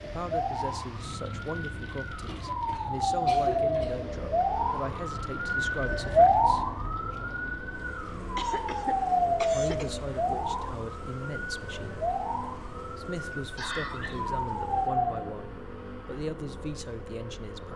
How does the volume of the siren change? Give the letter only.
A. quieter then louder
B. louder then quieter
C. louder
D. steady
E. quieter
B.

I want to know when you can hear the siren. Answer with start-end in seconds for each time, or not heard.
0.0-15.2.